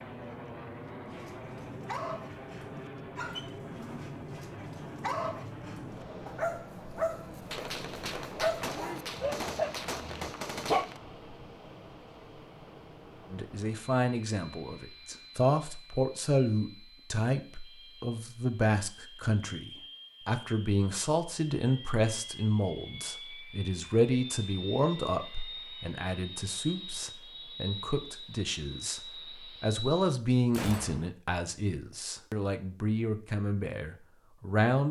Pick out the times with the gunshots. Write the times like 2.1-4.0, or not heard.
7.5-11.0, 30.5-31.1.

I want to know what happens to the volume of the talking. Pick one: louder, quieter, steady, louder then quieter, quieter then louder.
steady.